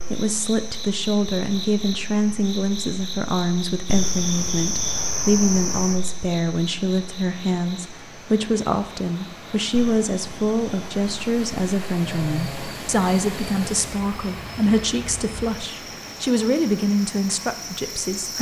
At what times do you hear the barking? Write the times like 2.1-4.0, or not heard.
not heard.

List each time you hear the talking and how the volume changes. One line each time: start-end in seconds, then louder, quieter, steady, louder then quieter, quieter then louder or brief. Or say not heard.
0.1-18.3 steady.